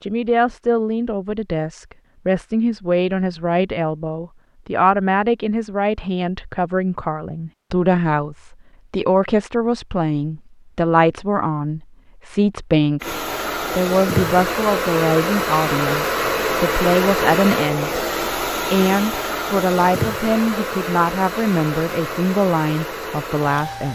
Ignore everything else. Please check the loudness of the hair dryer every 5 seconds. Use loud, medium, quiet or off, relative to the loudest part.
off, off, loud, loud, medium.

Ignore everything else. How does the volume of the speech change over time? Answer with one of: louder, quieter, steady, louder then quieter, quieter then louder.
steady.